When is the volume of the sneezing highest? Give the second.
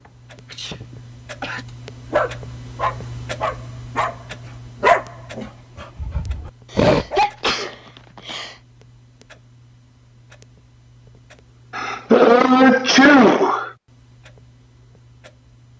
13 s.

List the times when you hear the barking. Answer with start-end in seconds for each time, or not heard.
2.1-4.2, 4.8-7.2.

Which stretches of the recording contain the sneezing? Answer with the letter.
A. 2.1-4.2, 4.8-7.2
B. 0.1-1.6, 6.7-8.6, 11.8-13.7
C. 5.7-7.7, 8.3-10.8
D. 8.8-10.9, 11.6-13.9
B.